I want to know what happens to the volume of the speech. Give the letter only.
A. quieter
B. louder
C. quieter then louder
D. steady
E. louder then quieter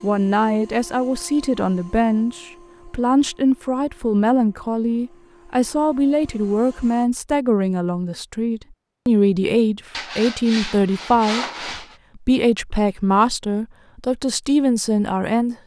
D.